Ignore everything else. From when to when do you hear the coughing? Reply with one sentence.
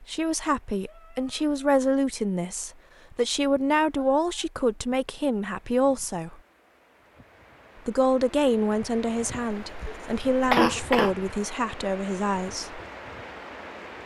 The coughing can be heard from 9.6 to 11.1 s.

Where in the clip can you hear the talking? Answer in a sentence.
You can hear the talking from 0.0 to 6.4 s and from 7.8 to 12.8 s.